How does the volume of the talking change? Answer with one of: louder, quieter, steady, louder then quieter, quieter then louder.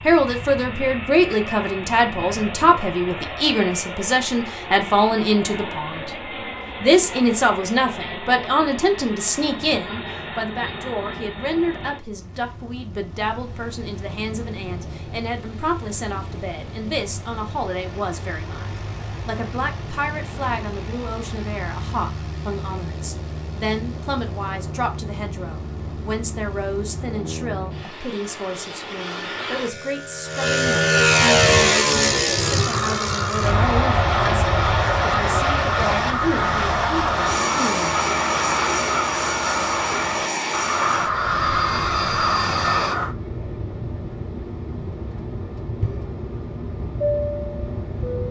quieter.